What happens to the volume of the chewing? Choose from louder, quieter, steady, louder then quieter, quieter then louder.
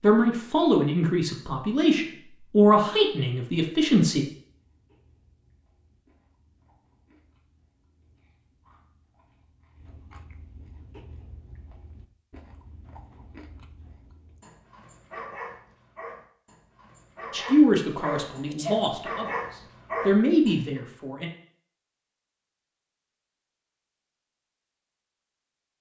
louder.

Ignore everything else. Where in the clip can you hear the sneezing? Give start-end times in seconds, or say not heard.
17.9-19.0.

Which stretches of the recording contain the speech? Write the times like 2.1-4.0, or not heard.
0.0-4.2, 17.3-21.3.